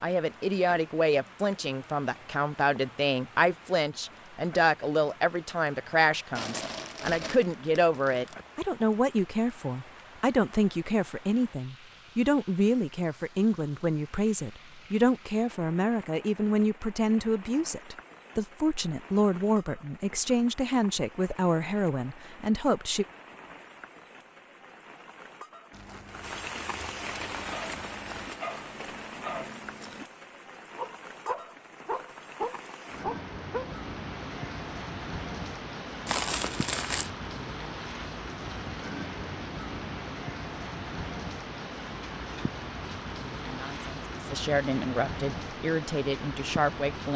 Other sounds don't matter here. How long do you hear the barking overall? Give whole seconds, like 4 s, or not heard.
6 s.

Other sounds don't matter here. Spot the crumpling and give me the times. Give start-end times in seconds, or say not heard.
6.3-8.3, 25.7-28.4, 36.0-37.1.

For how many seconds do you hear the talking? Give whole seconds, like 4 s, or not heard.
27 s.